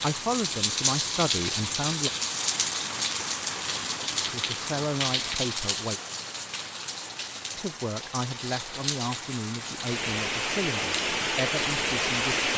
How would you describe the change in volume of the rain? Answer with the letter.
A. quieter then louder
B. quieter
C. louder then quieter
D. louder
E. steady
A.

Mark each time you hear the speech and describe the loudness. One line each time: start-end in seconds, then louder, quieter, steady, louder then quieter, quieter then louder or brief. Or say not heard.
0.0-2.1 brief
4.3-6.0 brief
7.5-12.5 steady.